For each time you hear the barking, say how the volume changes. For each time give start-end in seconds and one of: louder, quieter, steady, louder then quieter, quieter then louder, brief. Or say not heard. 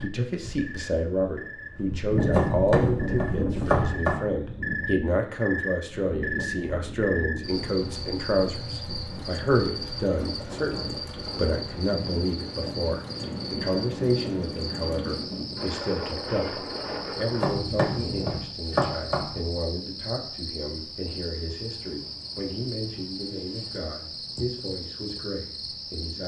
not heard.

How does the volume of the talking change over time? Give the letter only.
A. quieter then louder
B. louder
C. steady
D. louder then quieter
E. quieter
E.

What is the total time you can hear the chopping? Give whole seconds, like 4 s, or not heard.
4 s.